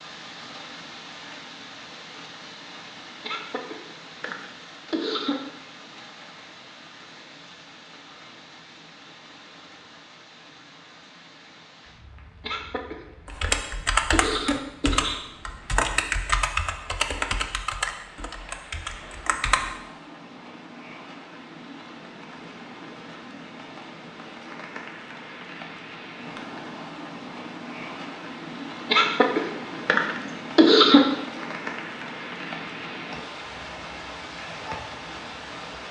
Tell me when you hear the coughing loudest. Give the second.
31 s.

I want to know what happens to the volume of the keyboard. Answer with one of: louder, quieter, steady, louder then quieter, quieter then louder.
quieter.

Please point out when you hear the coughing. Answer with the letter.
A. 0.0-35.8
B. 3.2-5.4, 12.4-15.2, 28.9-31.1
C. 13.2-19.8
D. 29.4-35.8
B.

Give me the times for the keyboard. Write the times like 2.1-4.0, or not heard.
13.2-19.8.